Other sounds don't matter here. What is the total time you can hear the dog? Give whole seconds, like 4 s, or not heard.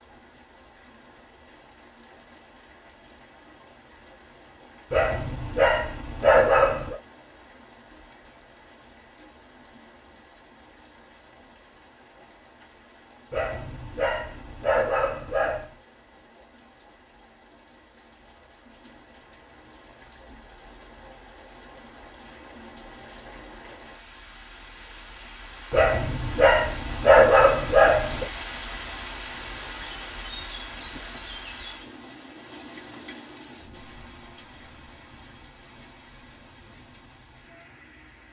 7 s.